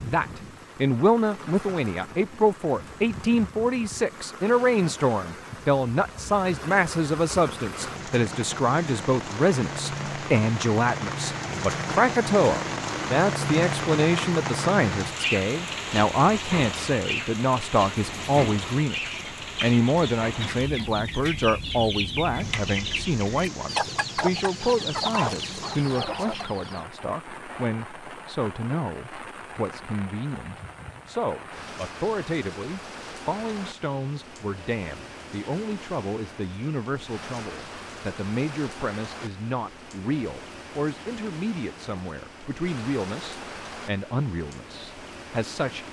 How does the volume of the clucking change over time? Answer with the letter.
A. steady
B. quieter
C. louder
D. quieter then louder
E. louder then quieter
C.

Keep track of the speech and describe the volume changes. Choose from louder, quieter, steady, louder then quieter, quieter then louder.
quieter.